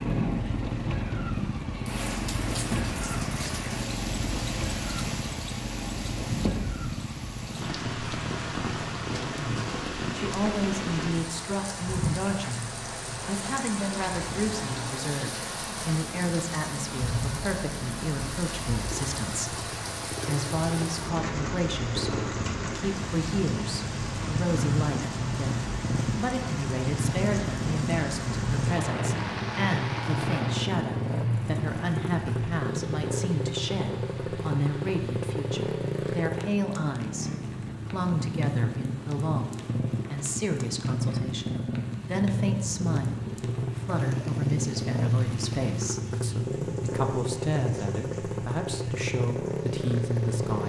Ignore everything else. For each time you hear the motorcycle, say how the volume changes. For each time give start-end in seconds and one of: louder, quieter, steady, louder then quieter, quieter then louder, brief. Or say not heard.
0.0-50.6 quieter then louder.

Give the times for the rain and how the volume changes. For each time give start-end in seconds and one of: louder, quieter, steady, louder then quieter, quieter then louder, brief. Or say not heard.
0.0-50.6 quieter.